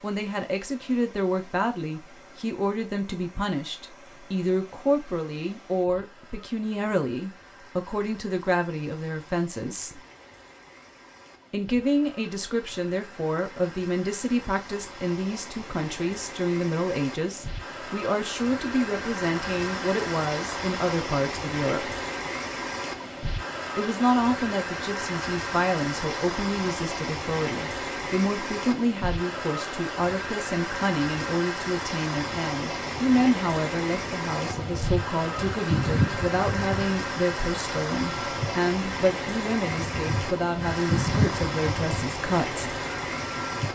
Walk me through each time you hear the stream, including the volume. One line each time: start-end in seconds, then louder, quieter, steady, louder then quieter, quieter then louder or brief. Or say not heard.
0.0-43.7 louder.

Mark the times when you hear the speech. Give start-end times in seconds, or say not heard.
0.0-10.0, 11.5-21.9, 23.8-42.6.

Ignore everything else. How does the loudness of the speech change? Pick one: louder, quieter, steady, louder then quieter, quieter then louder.
steady.